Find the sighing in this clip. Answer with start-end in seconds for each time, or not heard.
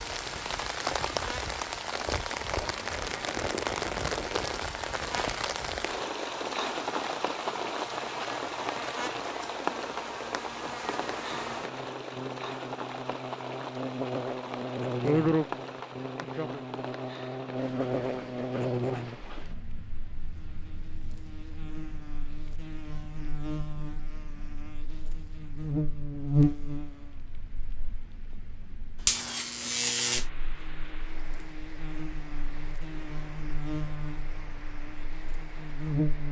15.0-15.4, 16.2-16.6.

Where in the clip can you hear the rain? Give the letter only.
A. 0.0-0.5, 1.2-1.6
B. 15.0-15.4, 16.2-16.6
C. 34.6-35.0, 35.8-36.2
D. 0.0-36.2
D.